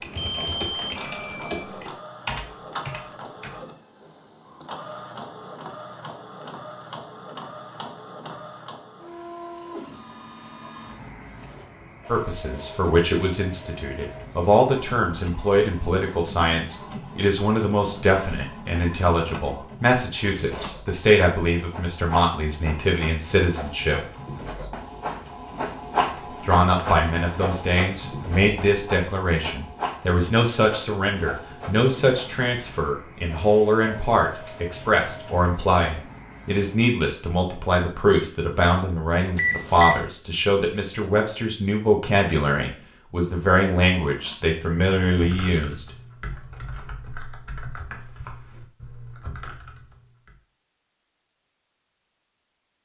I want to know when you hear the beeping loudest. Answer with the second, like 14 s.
40 s.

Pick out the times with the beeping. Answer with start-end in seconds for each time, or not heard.
0.1-1.6, 39.4-40.0.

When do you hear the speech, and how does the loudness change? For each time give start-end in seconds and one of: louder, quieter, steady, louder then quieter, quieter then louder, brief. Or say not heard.
12.1-24.0 steady
26.4-45.9 steady.